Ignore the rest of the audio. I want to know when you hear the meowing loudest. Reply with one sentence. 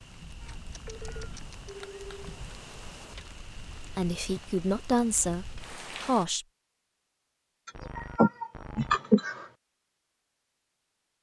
The loudest moment of the meowing is at 9 seconds.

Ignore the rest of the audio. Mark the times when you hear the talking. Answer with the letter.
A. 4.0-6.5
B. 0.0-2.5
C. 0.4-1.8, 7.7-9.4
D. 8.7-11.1
A.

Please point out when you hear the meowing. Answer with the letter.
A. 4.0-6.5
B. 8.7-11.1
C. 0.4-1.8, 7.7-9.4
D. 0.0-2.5
C.